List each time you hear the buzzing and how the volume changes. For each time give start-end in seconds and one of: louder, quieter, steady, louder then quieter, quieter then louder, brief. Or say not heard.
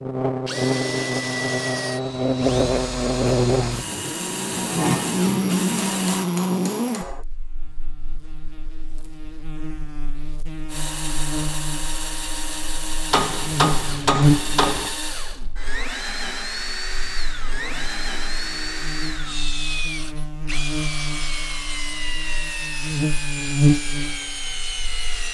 0.0-25.2 quieter then louder.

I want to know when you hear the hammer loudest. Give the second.
14 s.